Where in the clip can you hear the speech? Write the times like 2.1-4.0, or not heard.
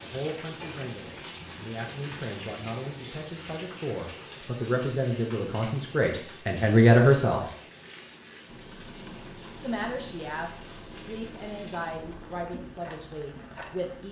0.0-7.5, 9.5-14.0.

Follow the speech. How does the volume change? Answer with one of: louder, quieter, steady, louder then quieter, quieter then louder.
louder then quieter.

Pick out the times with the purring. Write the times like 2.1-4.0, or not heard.
not heard.